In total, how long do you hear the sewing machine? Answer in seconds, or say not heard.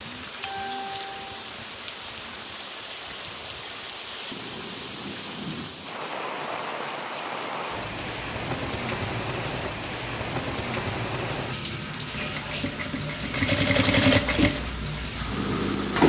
8 s.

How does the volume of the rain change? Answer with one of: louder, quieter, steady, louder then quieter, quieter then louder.
steady.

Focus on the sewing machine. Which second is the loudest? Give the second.
14 s.